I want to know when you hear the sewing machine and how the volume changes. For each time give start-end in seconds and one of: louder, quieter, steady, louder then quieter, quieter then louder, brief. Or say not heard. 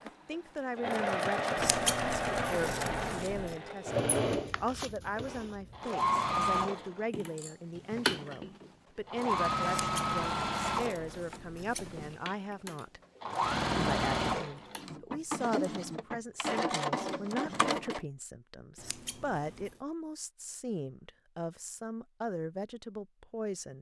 0.0-18.1 steady.